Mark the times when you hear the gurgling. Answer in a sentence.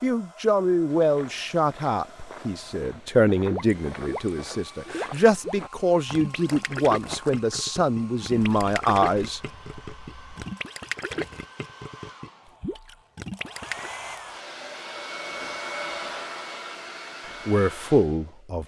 You can hear the gurgling from 3.4 to 13.9 s.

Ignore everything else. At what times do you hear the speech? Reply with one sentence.
You can hear the speech from 0.0 to 9.4 s and from 17.2 to 18.6 s.